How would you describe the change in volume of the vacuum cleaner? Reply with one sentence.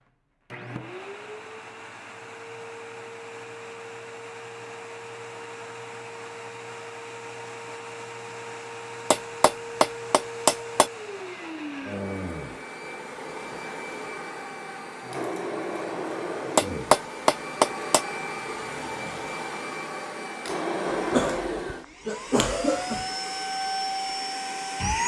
The loudness of the vacuum cleaner goes up.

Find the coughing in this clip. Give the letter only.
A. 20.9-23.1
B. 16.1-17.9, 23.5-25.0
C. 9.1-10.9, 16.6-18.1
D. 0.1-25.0
A.